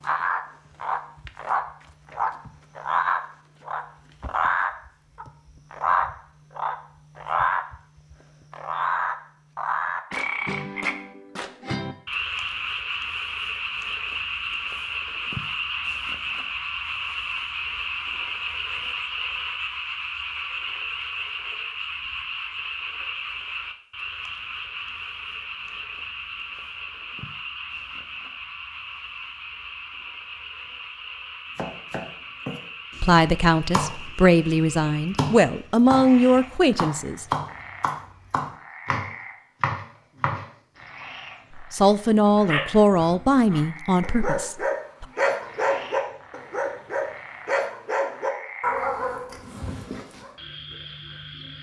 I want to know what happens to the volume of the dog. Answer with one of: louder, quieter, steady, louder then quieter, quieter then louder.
louder then quieter.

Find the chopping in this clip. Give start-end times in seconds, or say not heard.
31.6-40.5.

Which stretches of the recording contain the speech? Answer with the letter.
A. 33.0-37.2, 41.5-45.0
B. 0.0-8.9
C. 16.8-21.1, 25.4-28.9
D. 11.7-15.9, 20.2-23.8
A.